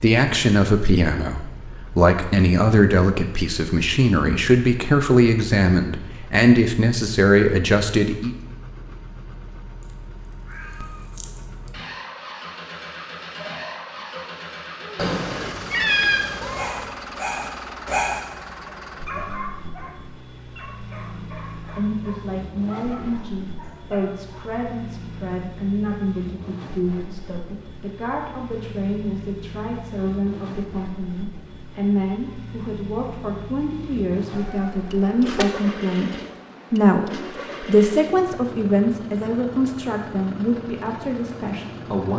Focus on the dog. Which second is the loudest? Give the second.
18 s.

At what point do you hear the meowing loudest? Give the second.
16 s.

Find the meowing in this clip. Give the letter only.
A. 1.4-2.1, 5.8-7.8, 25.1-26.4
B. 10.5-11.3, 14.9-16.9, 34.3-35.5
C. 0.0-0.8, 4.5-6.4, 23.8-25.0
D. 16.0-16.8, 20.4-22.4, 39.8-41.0
B.